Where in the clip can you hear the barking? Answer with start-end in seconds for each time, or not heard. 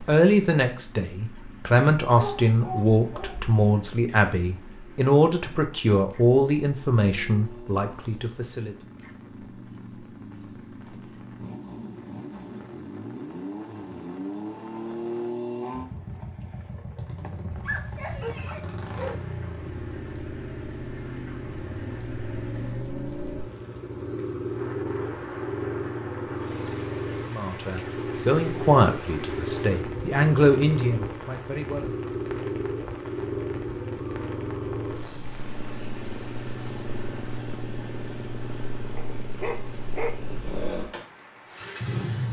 2.1-3.5, 17.6-19.2, 39.0-40.1.